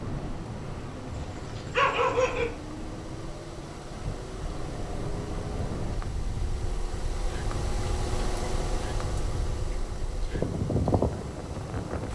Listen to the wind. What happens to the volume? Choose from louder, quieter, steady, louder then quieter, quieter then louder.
louder.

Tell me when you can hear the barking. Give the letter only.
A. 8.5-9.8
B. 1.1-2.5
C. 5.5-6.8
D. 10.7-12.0
B.